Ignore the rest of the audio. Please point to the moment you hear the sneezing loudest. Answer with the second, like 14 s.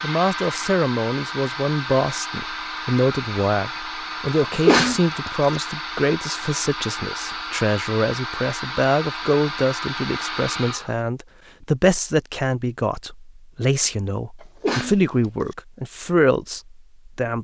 5 s.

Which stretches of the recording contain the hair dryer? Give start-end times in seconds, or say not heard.
0.0-10.9.